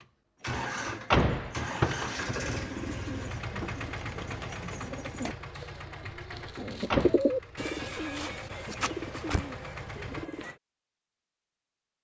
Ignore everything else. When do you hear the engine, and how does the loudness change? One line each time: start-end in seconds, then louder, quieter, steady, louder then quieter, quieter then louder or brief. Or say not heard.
0.0-10.3 quieter.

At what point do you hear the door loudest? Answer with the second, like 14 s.
1 s.